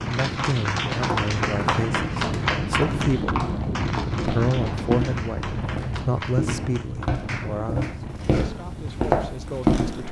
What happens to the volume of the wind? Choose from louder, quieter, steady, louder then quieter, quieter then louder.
quieter.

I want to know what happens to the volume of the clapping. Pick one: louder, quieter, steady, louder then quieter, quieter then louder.
quieter.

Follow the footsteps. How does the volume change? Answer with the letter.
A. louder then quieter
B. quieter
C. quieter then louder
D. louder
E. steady
D.